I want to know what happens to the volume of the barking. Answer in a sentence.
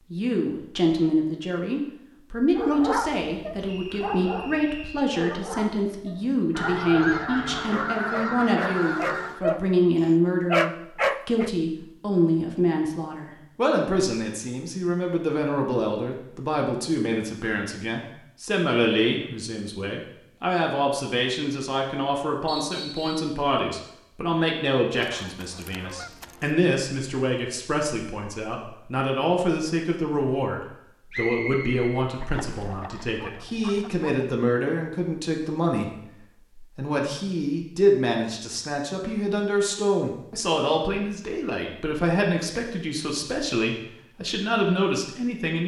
The volume of the barking goes down, then up.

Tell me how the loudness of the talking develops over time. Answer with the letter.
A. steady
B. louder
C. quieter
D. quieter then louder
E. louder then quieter
A.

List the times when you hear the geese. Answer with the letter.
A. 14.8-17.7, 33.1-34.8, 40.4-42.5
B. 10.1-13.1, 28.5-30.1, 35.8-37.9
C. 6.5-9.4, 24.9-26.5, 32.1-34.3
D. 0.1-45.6
C.